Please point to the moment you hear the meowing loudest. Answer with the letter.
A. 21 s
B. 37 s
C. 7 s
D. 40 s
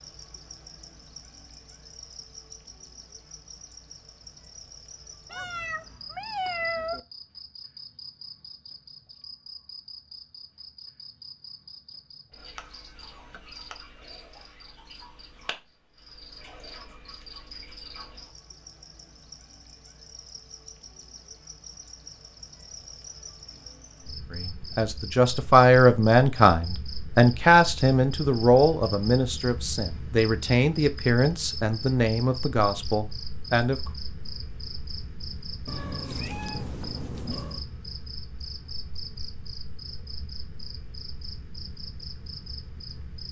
C.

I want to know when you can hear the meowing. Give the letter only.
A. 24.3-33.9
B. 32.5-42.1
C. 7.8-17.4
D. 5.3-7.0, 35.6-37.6
D.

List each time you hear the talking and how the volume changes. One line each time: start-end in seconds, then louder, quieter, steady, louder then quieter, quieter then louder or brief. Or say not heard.
24.3-33.9 quieter.